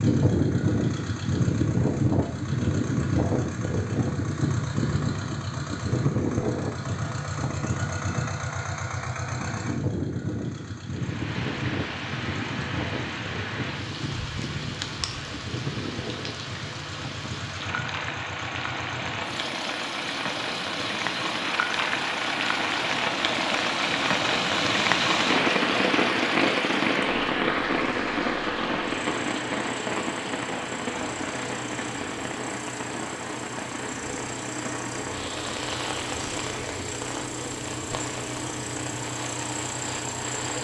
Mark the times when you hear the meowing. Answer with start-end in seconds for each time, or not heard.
not heard.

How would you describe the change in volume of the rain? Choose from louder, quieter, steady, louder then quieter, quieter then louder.
louder then quieter.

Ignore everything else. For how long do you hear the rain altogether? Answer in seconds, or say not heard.
30 s.